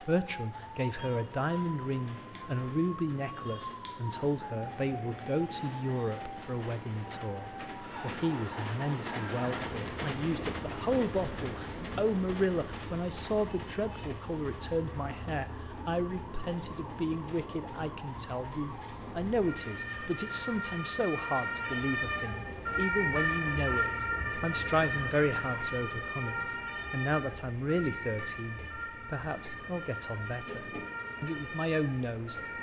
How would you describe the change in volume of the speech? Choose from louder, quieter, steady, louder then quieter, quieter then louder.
steady.